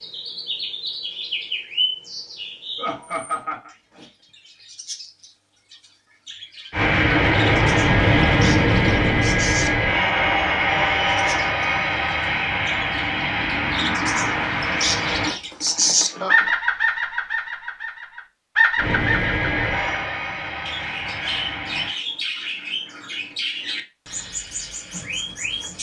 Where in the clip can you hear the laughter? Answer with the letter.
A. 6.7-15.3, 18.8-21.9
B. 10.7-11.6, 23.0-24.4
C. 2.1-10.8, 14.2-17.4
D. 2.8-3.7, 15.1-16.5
D.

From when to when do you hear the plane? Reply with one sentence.
The plane can be heard from 6.7 to 15.3 s and from 18.8 to 21.9 s.